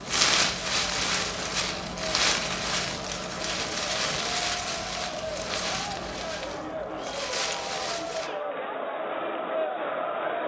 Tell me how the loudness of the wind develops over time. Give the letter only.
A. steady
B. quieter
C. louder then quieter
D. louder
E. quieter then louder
B.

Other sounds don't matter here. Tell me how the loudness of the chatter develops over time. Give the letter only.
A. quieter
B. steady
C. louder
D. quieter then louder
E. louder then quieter
C.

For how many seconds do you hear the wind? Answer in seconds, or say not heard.
8 s.